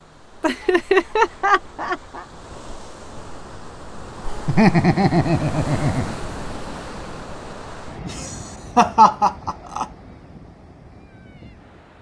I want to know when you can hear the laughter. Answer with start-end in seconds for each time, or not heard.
0.4-2.2, 4.2-6.2, 8.1-9.8.